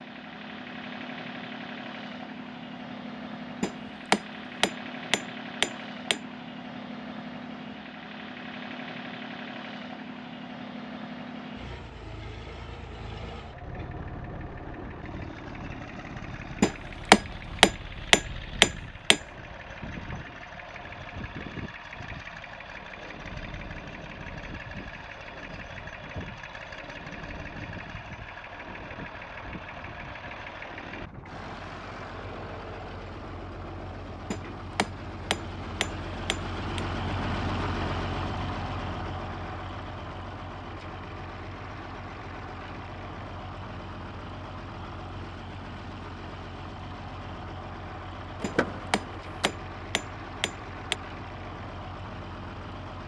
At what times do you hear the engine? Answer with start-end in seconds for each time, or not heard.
0.0-53.0.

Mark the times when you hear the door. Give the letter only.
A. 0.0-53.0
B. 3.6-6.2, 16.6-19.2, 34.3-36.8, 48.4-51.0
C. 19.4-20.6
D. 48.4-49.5
D.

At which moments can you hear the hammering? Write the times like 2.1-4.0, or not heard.
3.6-6.2, 16.6-19.2, 34.3-36.8, 48.4-51.0.